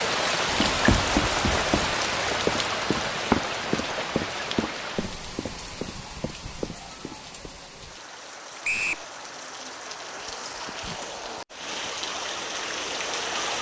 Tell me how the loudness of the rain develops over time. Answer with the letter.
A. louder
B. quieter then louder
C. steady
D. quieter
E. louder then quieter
B.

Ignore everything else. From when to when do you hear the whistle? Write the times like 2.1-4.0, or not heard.
8.6-9.1.